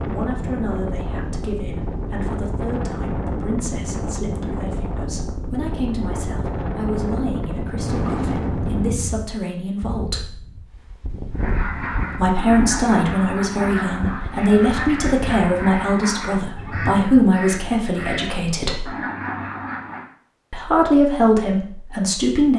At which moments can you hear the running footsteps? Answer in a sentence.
The running footsteps can't be heard in this clip.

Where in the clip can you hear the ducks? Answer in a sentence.
The ducks can be heard from 11.3 to 20.1 s.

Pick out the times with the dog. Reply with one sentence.
The dog can't be heard in this clip.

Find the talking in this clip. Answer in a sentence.
You can hear the talking from 0.1 to 10.3 s, from 12.1 to 18.9 s and from 20.5 to 22.5 s.